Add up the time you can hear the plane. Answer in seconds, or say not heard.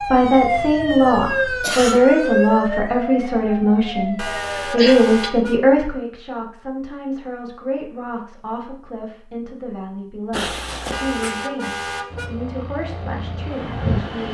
2 s.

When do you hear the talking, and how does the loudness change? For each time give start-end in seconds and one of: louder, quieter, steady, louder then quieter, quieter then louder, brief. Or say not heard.
0.0-14.2 quieter.